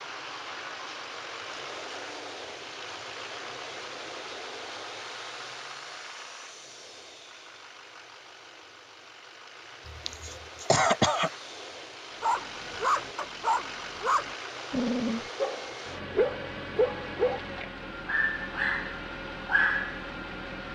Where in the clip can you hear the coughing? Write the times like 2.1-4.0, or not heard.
9.8-11.3.